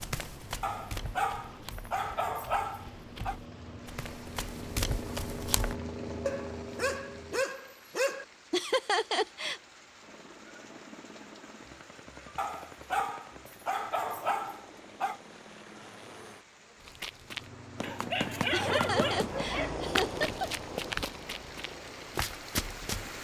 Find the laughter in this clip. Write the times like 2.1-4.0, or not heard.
8.5-9.6, 18.5-20.5.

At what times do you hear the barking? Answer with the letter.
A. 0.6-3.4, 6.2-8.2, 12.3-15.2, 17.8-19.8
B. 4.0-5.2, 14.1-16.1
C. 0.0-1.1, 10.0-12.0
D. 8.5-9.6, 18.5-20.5
A.